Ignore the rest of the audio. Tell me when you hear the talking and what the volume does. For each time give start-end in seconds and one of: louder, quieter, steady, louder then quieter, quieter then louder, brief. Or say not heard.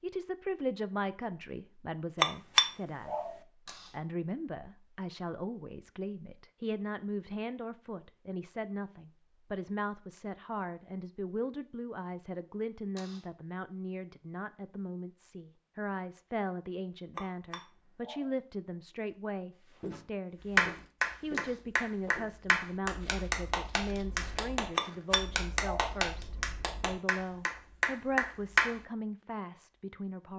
0.0-30.3 steady.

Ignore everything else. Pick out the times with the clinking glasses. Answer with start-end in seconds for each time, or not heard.
2.2-3.4, 17.1-18.3, 24.8-25.9.